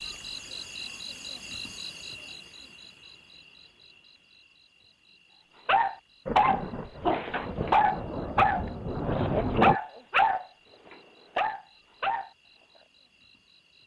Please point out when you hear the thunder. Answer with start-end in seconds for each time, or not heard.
6.2-9.8.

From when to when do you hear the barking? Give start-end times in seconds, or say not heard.
5.7-12.3.